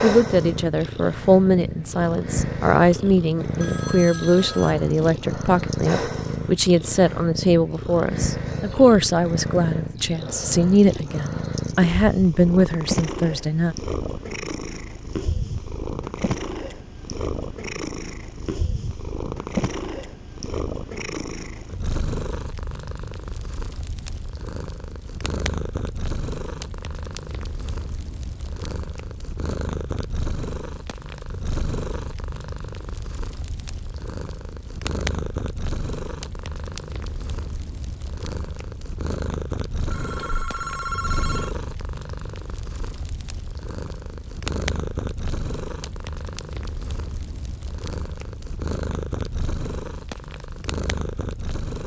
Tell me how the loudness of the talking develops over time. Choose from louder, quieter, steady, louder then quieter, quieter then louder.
steady.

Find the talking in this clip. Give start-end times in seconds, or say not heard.
0.0-13.8.